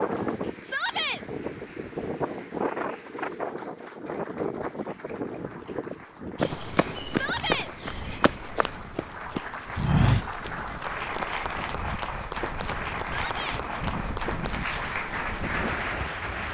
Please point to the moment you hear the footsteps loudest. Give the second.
10 s.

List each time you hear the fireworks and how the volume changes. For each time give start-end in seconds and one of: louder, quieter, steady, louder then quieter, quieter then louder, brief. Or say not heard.
not heard.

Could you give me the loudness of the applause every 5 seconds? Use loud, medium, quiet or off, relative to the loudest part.
quiet, medium, loud, loud.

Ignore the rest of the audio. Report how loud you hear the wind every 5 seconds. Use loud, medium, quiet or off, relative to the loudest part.
loud, medium, medium, loud.